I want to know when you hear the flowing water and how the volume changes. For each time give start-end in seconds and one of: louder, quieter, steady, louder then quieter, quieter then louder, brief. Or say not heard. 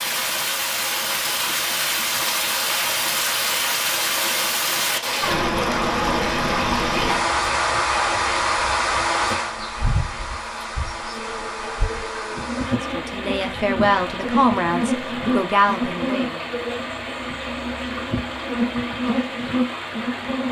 0.0-20.4 quieter.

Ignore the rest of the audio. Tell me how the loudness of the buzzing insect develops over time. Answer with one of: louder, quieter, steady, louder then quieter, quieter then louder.
louder.